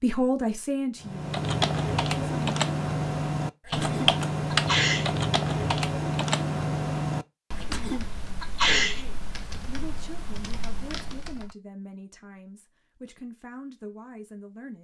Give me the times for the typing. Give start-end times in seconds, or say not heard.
1.0-11.6.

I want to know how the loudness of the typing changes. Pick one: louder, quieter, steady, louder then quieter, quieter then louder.
quieter.